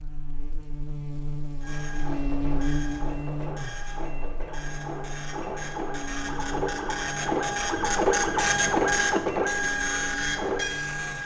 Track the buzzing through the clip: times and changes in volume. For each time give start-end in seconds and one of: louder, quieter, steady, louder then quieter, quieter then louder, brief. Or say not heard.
0.0-11.2 quieter.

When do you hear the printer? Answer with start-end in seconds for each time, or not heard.
1.6-11.2.